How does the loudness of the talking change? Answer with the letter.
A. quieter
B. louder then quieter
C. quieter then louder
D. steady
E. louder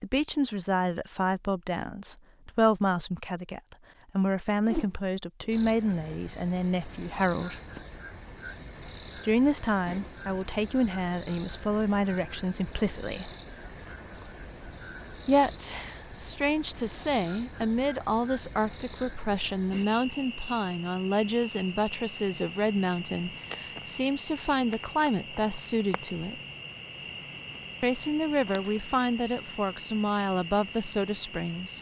D.